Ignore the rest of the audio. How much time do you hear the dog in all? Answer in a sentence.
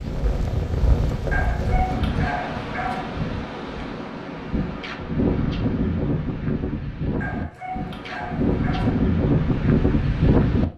The dog can be heard for 4 seconds in total.